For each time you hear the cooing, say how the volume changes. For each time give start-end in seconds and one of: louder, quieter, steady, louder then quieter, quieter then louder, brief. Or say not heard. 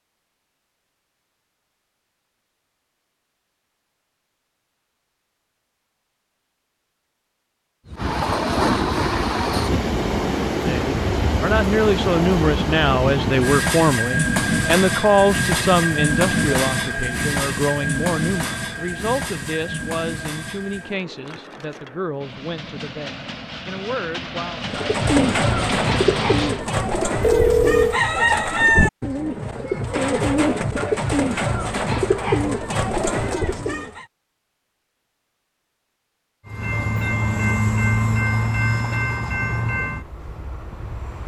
24.6-34.0 steady.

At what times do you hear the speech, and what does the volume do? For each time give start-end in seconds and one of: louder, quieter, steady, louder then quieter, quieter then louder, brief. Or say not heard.
10.6-24.6 quieter.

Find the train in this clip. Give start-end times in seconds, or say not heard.
7.8-26.6, 36.5-41.2.